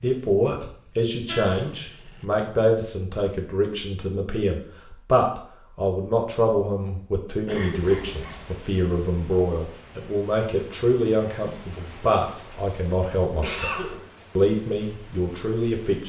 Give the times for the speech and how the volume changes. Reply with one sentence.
You can hear the speech from 0.0 to 16.0 s, at a steady volume.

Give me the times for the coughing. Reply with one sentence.
The coughing can be heard from 0.6 to 1.8 s, from 7.5 to 8.4 s and from 12.7 to 14.1 s.